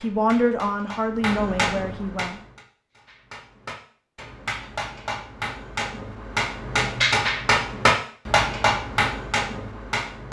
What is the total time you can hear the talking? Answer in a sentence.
The talking can be heard for 2 seconds in total.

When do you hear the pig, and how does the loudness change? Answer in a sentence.
You can't hear the pig here.